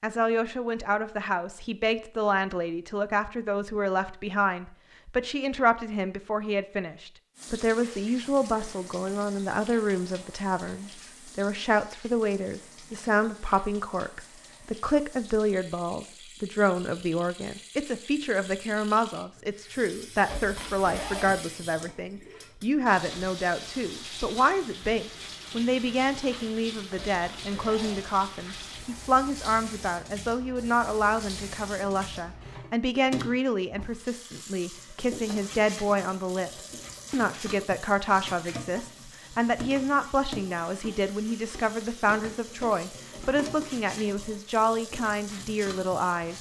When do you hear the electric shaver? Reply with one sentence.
The electric shaver can't be heard in this clip.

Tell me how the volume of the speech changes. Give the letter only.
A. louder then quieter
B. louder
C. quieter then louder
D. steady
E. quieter
D.